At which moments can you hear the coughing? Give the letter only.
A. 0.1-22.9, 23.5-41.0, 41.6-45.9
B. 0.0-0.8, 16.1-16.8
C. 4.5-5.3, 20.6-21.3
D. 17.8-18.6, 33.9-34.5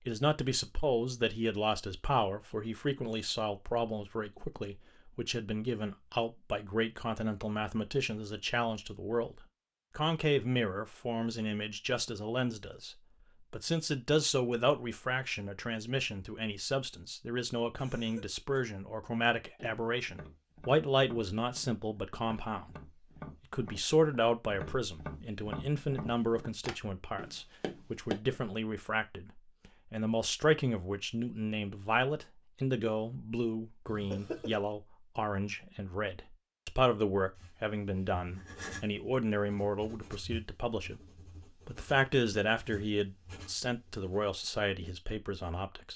D.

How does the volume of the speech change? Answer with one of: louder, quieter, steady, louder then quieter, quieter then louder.
steady.